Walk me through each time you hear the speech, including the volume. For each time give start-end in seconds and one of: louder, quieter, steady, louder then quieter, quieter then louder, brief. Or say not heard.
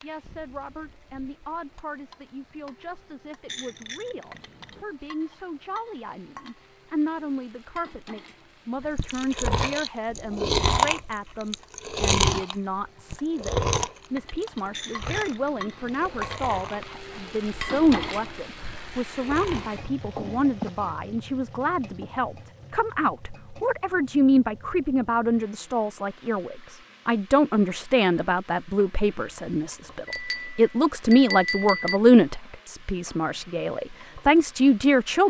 0.0-35.2 louder.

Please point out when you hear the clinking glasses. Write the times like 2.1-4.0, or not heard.
3.5-4.8, 14.7-16.1, 30.1-32.0.